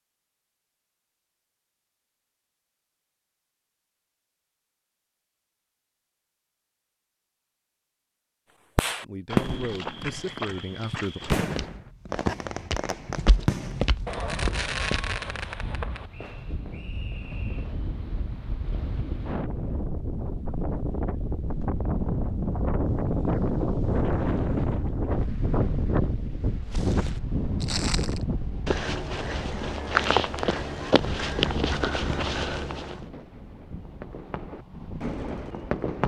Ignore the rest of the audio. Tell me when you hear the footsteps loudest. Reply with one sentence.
The volume of the footsteps peaks at 30 seconds.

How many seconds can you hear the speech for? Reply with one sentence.
The speech can be heard for 2 seconds in total.